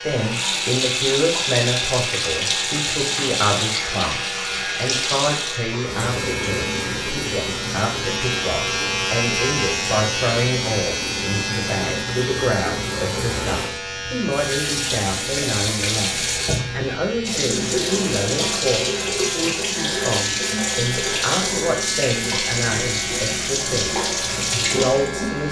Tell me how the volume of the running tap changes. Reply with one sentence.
The volume of the running tap goes down, then up.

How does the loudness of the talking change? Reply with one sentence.
The volume of the talking stays about the same.